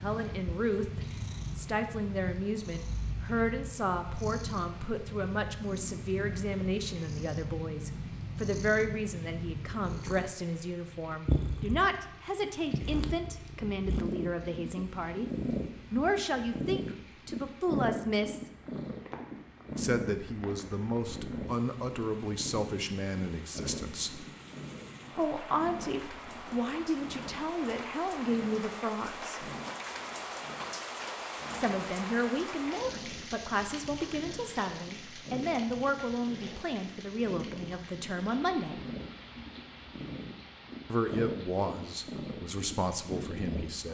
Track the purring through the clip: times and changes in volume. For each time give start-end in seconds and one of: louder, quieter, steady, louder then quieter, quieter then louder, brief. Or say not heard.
0.0-43.8 quieter then louder.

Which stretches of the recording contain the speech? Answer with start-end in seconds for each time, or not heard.
0.0-15.3, 15.9-18.4, 19.8-24.2, 25.1-29.4, 31.6-38.8, 40.9-43.8.